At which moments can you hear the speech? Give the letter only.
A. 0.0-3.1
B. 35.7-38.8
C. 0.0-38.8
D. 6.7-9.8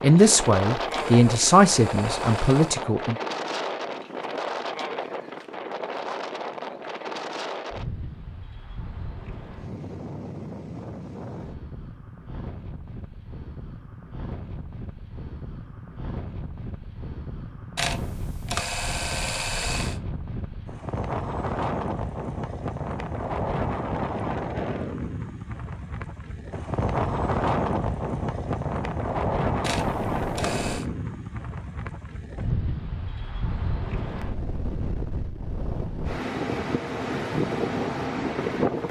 A.